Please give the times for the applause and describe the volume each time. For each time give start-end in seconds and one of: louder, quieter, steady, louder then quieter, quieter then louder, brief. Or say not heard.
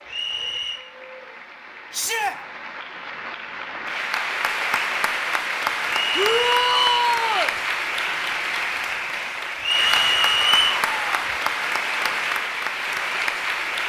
0.0-13.8 louder.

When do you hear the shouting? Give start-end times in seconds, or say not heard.
1.9-2.4, 6.2-7.5, 9.8-11.3.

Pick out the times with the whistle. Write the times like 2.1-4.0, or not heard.
0.1-0.8, 6.0-7.0, 9.6-10.8.